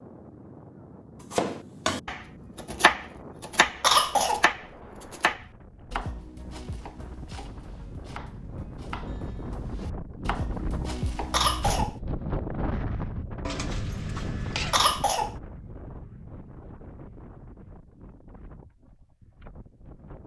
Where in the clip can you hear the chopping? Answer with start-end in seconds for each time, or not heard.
1.3-11.9.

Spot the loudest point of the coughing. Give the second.
4 s.